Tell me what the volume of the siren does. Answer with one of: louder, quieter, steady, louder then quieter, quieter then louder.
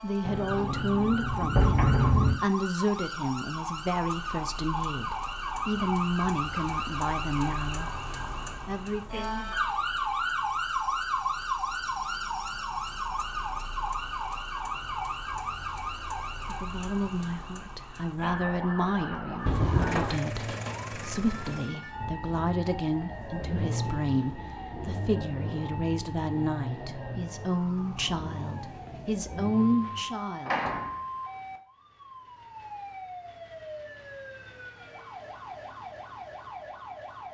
quieter.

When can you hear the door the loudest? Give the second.
2 s.